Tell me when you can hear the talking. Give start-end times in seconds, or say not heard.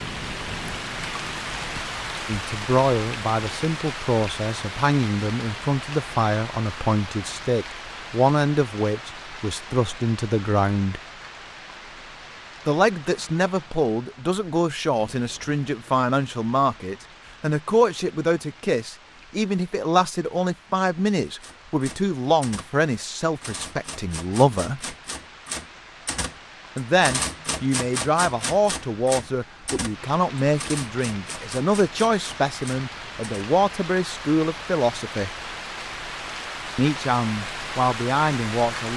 2.2-11.0, 12.7-24.9, 26.8-35.3, 36.8-38.9.